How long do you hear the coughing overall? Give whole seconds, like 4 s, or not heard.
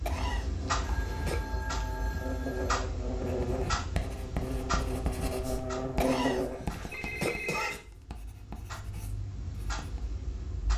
3 s.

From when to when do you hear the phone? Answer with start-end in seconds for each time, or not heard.
0.8-2.9, 6.9-7.8.